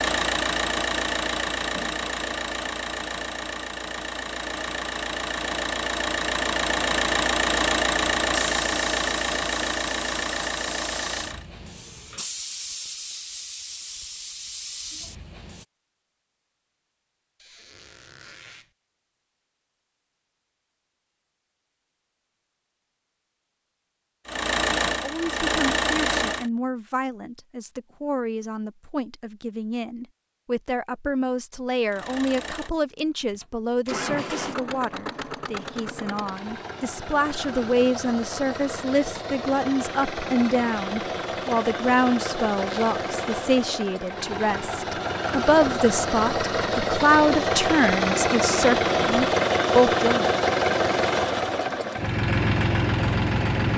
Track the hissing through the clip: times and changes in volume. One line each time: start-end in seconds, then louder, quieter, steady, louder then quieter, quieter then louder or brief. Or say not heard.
8.2-15.7 steady.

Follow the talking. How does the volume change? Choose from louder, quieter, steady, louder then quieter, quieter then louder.
louder.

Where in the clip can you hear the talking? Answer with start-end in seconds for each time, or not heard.
24.9-50.2.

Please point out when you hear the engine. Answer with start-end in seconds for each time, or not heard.
0.0-11.4, 24.2-26.5, 31.9-53.7.